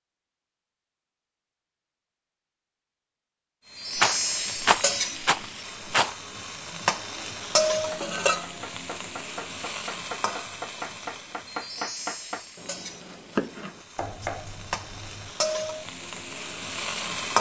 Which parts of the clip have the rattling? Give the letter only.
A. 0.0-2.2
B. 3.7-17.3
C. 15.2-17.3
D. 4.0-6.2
D.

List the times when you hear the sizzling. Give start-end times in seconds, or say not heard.
3.7-17.3.